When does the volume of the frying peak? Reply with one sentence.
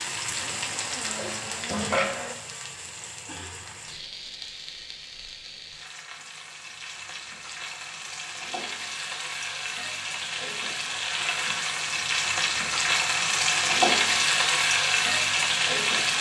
The volume of the frying peaks at 14 seconds.